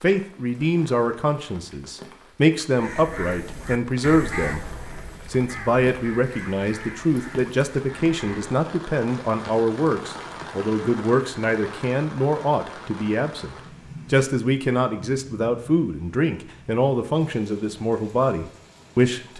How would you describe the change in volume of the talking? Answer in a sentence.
The loudness of the talking stays about the same.